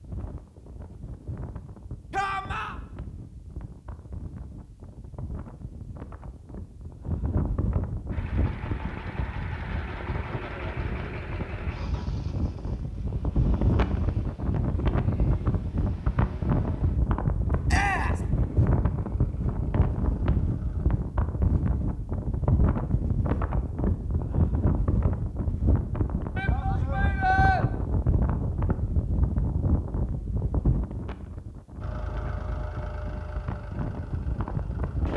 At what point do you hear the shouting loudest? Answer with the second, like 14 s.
27 s.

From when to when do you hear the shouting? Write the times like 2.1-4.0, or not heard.
2.1-2.8, 17.6-18.2, 26.4-27.6.